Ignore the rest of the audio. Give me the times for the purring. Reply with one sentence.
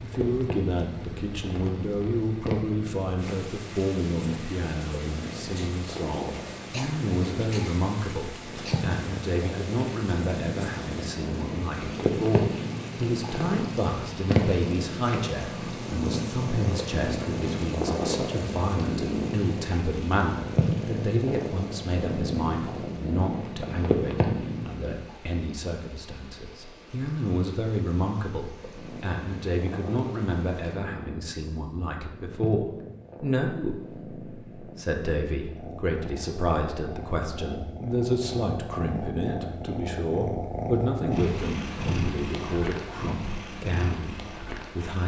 You can hear the purring from 0.0 to 25.0 s and from 28.6 to 45.0 s.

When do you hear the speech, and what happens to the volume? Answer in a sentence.
You can hear the speech from 0.0 to 45.0 s, at a steady volume.